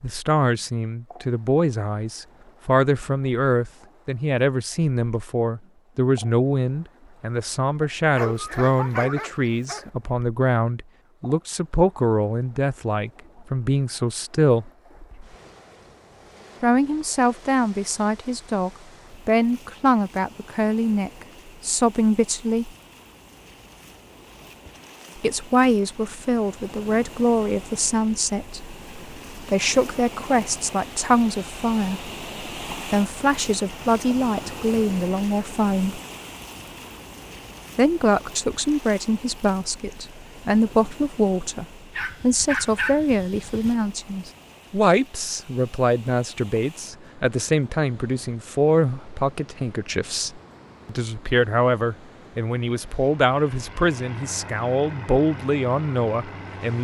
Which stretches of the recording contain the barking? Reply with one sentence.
The barking can be heard from 8.2 to 9.9 s and from 41.9 to 43.8 s.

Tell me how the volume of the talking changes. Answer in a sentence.
The volume of the talking stays about the same.